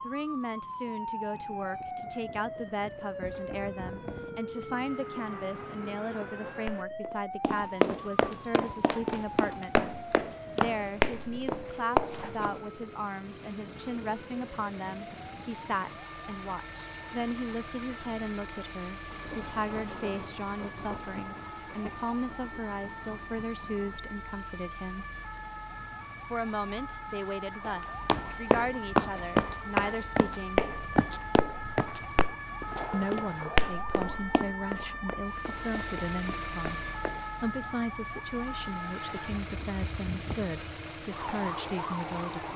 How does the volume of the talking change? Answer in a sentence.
The loudness of the talking stays about the same.